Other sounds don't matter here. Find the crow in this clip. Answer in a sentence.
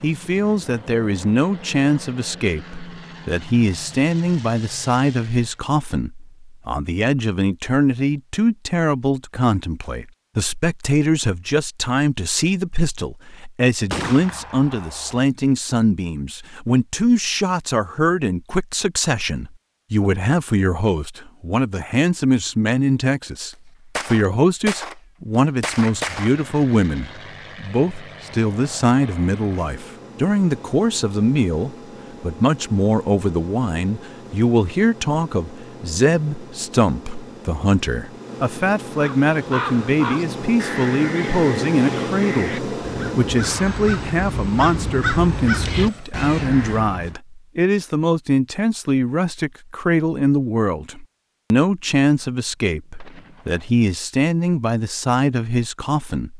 The crow can be heard from 39.0 to 47.1 s.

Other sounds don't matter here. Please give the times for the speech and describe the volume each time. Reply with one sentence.
You can hear the speech from 0.0 to 56.3 s, at a steady volume.